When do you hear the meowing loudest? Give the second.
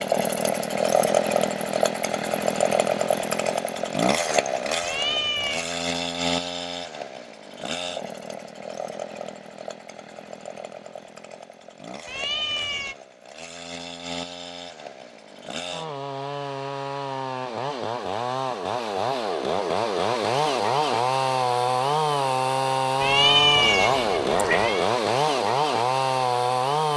23 s.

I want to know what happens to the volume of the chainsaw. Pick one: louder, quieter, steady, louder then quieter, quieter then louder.
quieter then louder.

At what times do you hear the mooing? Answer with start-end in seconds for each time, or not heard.
not heard.